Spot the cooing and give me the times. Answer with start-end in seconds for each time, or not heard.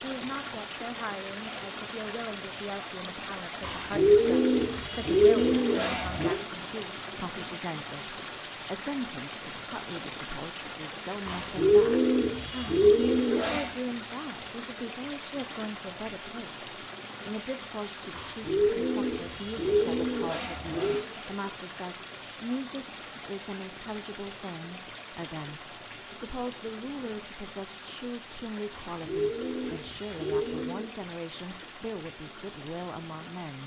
3.6-6.4, 11.2-13.7, 18.1-21.1, 28.7-30.9.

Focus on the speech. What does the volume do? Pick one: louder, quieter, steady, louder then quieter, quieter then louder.
steady.